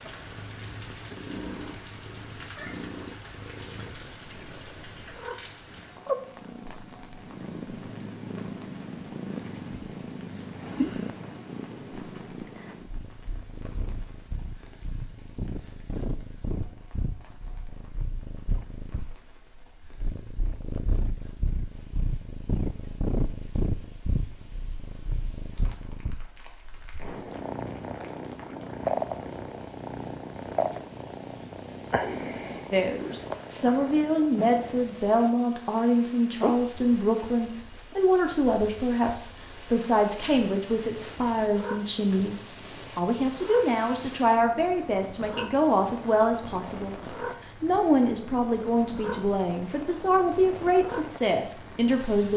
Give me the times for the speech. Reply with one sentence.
The speech can be heard from 32.7 to 52.3 s.